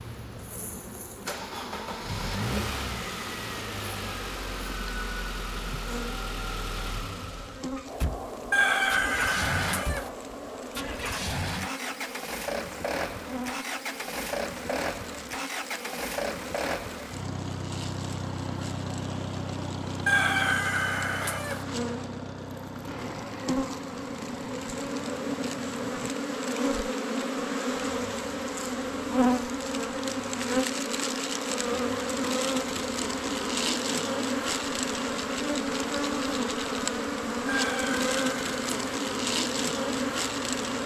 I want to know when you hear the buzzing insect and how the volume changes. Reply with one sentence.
You can hear the buzzing insect from 0.0 to 40.8 s, getting louder.